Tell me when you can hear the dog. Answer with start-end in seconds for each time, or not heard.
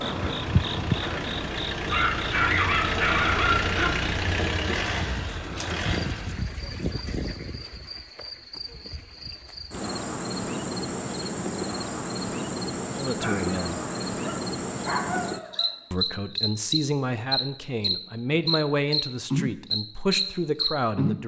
1.9-3.9, 13.2-15.7.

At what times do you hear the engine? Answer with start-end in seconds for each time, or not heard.
0.0-6.5.